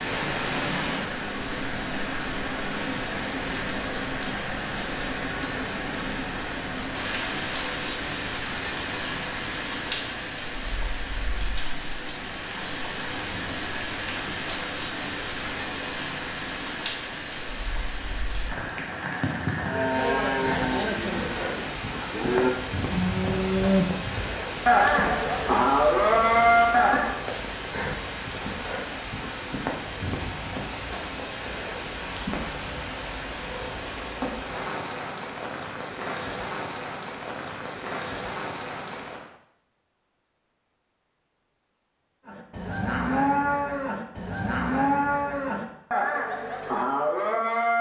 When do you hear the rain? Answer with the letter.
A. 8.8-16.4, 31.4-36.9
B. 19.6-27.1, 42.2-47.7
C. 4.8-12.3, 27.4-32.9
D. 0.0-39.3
D.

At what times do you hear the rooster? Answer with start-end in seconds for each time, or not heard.
not heard.